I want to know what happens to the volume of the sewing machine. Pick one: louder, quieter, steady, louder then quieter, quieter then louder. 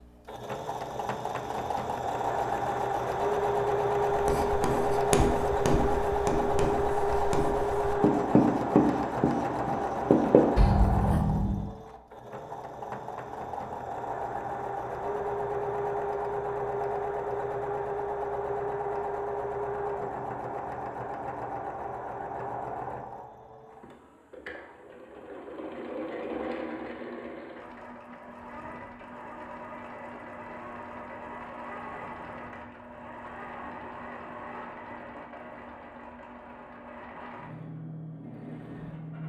quieter.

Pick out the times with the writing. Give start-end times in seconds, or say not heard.
4.1-11.7.